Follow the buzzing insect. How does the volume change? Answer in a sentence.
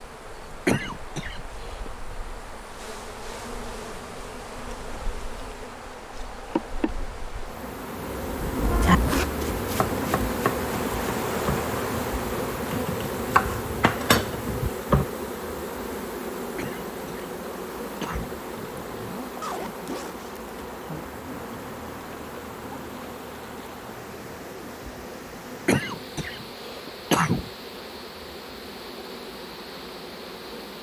The volume of the buzzing insect goes up, then down.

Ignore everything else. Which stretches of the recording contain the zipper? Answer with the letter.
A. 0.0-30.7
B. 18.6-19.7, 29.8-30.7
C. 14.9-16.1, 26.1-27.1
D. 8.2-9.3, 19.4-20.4
D.